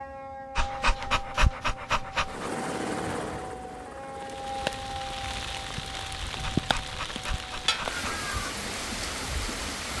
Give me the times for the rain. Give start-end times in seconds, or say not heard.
4.2-9.9.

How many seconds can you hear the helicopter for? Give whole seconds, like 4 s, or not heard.
3 s.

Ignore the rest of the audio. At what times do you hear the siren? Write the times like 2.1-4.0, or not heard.
0.0-8.6.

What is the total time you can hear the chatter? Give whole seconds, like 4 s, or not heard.
not heard.